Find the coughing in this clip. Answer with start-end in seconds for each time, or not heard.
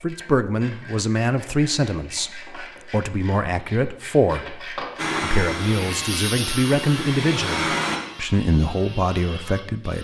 not heard.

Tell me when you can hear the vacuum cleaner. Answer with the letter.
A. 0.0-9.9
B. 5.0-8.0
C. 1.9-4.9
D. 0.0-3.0
B.